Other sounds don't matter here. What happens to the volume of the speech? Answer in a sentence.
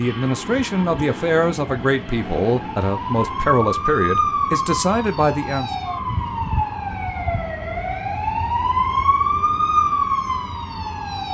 The volume of the speech stays about the same.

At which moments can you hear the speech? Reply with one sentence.
You can hear the speech from 0.0 to 5.7 s.